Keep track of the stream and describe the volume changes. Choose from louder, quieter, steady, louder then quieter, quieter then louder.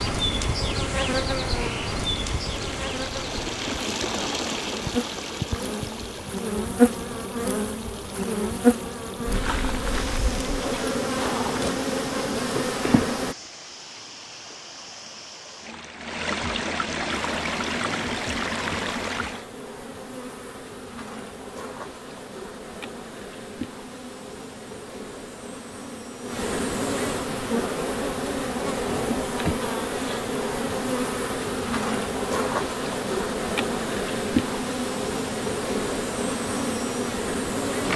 quieter then louder.